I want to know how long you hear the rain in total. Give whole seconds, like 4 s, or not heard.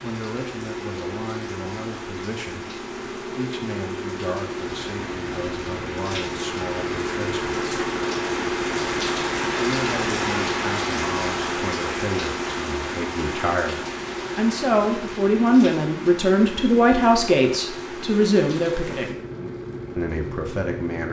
21 s.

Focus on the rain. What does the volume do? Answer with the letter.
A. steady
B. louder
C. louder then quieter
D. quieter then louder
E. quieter
C.